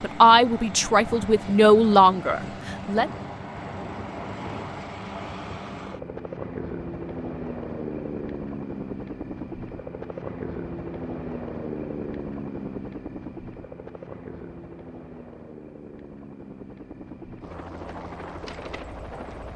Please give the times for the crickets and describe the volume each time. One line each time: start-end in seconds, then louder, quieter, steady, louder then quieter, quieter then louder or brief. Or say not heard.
not heard.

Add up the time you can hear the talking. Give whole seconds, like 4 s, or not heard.
3 s.